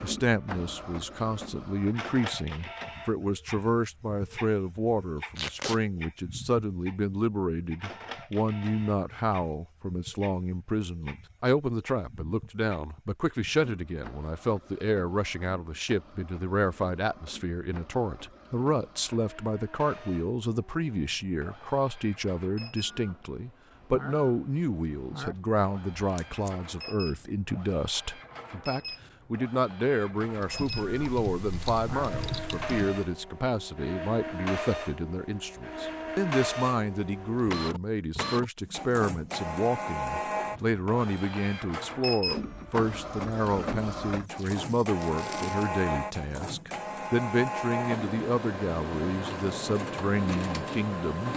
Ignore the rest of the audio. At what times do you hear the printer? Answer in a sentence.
The printer can be heard from 0.0 to 51.3 s.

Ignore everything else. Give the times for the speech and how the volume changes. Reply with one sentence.
You can hear the speech from 0.0 to 51.3 s, at a steady volume.